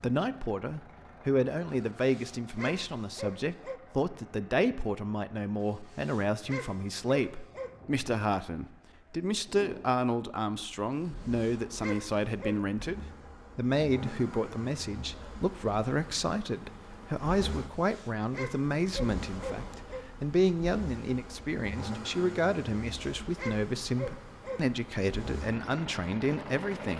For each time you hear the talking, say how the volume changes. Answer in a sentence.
The talking can be heard from 0.0 to 26.9 s, at a steady volume.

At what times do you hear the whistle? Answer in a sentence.
You can't hear the whistle here.